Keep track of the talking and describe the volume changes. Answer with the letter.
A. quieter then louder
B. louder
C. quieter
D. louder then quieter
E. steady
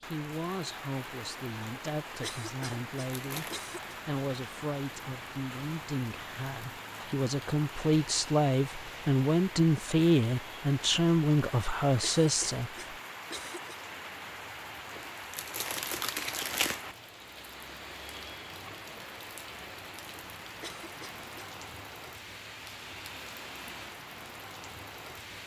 B.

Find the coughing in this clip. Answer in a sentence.
The coughing can be heard from 2.2 to 4.0 s, from 12.0 to 13.8 s and from 20.6 to 21.5 s.